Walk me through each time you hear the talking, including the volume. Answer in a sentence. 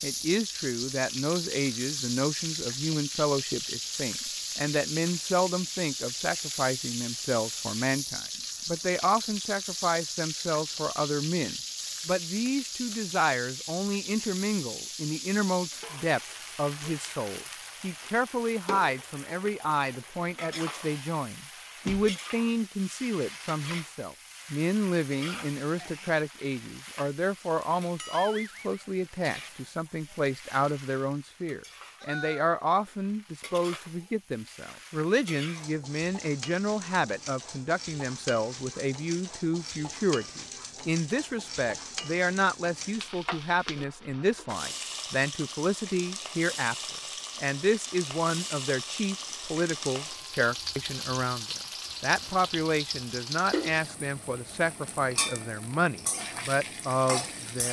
The talking can be heard from 0.0 to 57.6 s, at a steady volume.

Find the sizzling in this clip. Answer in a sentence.
The sizzling can be heard from 0.0 to 57.6 s.